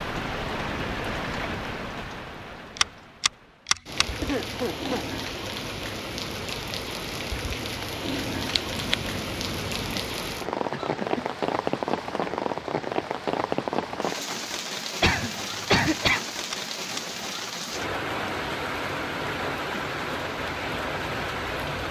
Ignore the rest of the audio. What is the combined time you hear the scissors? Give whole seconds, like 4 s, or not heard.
4 s.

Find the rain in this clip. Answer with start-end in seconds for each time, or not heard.
0.0-21.8.